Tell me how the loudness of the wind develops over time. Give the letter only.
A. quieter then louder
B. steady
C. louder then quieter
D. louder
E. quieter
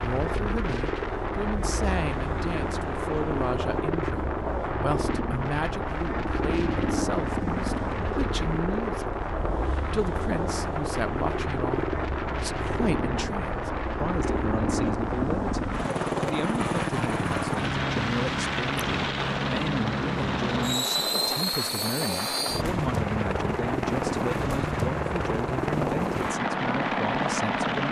B.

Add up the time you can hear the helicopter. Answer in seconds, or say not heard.
28 s.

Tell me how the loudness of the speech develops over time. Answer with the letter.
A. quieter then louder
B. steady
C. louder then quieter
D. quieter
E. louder
B.